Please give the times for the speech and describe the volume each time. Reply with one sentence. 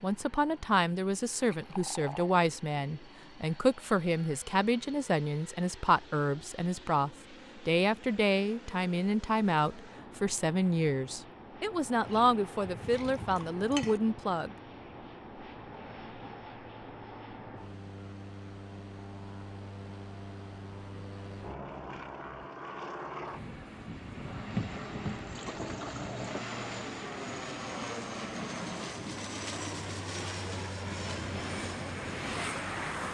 You can hear the speech from 0.0 to 14.6 s, at a steady volume.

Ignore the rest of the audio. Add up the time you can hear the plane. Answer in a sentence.
You can hear the plane for 33 seconds altogether.